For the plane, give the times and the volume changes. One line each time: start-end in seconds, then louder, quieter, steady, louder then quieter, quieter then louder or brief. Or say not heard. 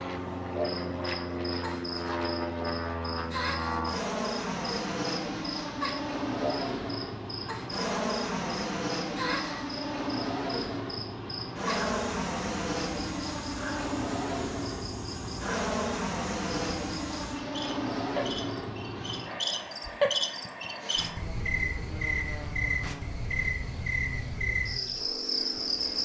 0.0-26.0 quieter.